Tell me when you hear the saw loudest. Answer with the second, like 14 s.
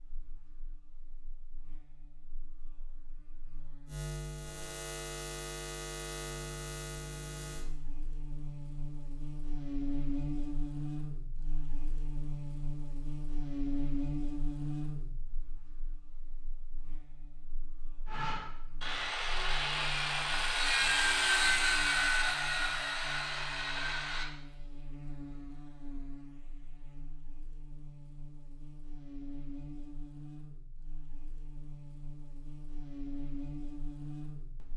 21 s.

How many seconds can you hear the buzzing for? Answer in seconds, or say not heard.
35 s.